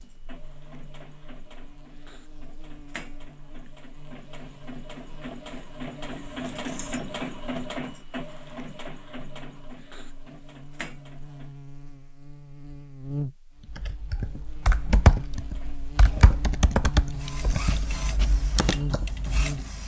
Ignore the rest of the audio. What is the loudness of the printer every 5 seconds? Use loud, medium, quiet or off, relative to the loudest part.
medium, loud, medium, loud.